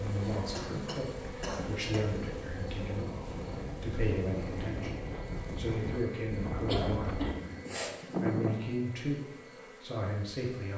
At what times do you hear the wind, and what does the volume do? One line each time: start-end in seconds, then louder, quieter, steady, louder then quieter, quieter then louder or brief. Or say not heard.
0.0-8.6 louder.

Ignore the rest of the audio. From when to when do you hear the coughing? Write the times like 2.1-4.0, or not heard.
0.5-2.0, 6.7-8.0.